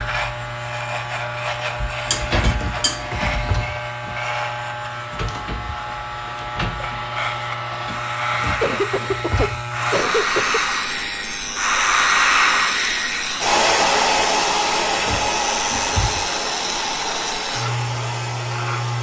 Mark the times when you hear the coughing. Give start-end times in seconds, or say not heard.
8.6-10.6.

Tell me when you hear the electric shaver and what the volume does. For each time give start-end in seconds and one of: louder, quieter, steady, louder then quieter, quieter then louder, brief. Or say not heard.
0.0-18.9 steady.